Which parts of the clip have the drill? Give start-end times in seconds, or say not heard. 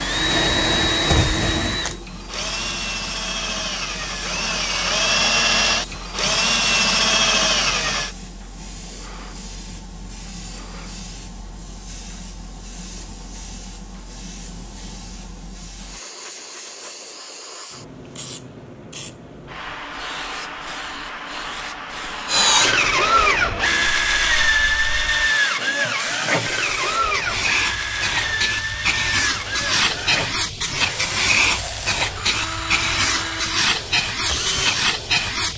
0.0-8.1, 22.2-35.5.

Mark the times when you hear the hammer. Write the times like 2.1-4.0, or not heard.
not heard.